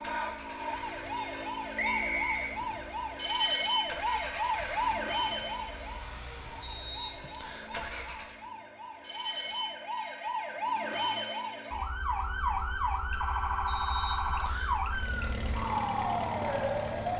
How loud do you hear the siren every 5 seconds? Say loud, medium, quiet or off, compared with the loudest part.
loud, medium, loud, loud.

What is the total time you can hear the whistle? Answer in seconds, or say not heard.
3 s.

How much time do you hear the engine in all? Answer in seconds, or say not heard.
11 s.